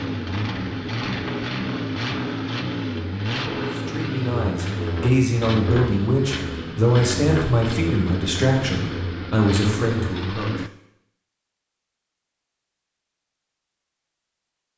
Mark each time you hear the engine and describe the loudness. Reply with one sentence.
You can hear the engine from 0.0 to 10.7 s, at a steady volume.